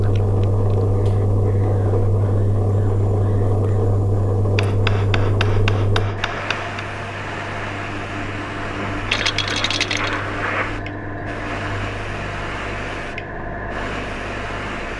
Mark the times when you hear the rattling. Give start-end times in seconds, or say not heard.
9.1-10.2.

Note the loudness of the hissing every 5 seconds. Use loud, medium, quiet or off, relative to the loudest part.
quiet, loud, loud.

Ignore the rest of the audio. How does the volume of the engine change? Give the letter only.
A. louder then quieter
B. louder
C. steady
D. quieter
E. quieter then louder
D.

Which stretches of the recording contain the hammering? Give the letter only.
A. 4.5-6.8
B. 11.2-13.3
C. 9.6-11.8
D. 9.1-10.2
A.